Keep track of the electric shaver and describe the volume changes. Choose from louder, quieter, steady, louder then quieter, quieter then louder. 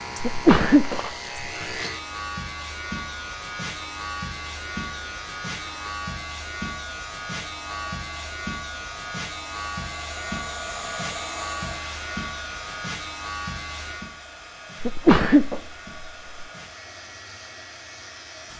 quieter.